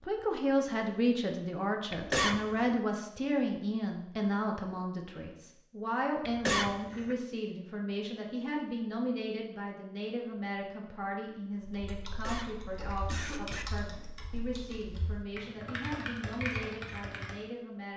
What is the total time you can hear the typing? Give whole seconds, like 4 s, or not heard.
6 s.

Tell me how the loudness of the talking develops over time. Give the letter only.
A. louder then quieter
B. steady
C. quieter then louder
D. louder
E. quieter
E.